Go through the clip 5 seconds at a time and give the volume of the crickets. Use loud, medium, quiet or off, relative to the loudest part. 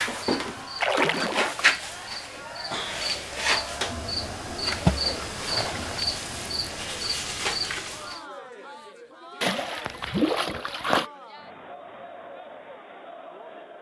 loud, loud, off.